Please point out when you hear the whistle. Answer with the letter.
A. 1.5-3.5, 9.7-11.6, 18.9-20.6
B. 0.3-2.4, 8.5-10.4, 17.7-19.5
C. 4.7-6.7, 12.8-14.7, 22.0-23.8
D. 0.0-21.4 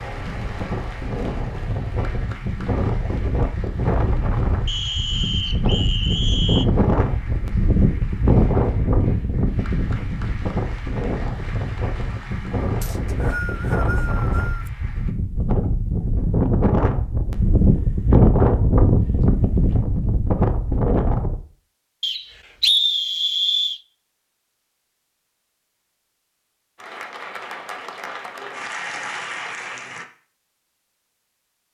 C.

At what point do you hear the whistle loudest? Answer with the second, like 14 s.
23 s.